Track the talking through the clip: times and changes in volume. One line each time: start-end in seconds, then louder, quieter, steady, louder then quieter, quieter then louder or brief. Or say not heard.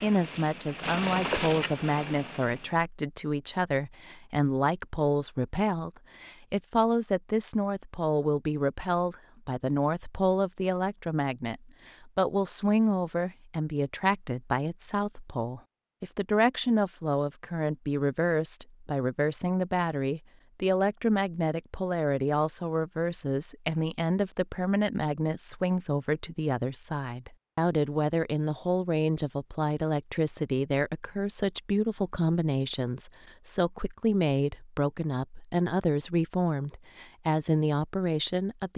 0.0-38.7 steady.